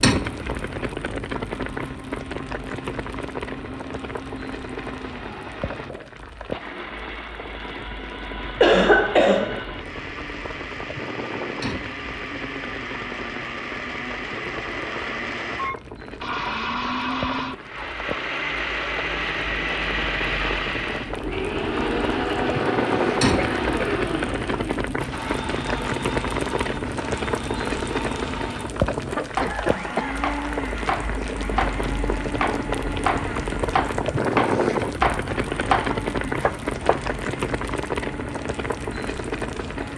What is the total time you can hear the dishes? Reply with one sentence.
The dishes can't be heard in this clip.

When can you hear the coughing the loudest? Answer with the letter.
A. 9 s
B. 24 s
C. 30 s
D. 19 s
A.